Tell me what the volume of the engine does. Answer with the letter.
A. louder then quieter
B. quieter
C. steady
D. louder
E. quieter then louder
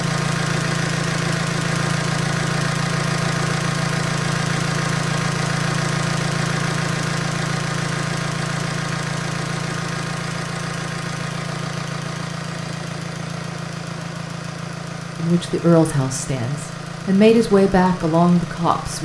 B.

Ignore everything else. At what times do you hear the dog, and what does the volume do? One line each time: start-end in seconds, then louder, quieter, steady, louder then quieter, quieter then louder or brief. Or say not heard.
not heard.